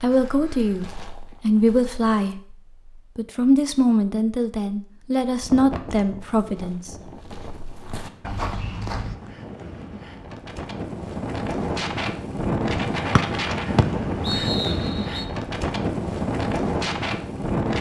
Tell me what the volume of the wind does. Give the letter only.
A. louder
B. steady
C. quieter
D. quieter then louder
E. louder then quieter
A.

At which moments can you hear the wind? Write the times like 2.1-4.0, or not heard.
5.4-17.7.